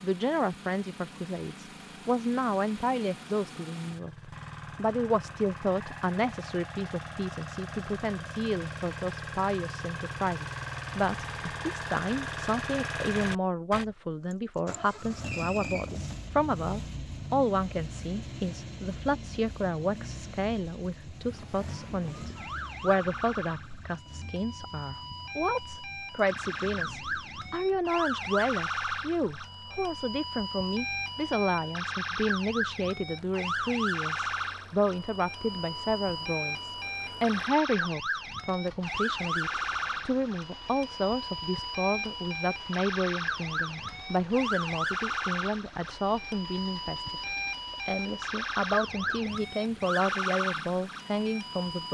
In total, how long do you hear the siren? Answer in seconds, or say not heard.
31 s.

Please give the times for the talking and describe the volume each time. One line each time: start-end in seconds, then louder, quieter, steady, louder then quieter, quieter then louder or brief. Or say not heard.
0.0-51.8 steady.